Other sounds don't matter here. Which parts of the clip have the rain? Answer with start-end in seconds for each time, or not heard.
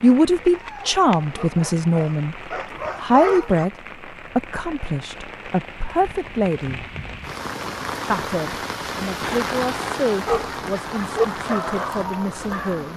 0.0-12.9.